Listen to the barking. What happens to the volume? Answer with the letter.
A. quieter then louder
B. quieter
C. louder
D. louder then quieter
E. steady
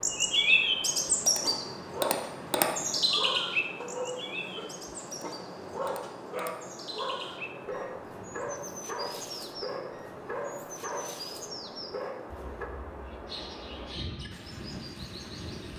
E.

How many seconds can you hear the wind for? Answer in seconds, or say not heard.
16 s.